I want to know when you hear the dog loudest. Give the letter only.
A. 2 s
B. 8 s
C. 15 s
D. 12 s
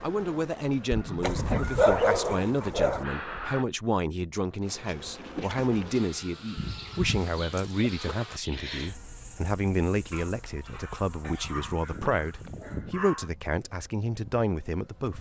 A.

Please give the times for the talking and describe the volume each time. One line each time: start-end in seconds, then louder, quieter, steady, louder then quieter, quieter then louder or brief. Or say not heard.
0.0-15.1 steady.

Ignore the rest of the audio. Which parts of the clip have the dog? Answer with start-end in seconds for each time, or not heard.
1.2-3.0, 6.5-8.2, 11.2-13.3.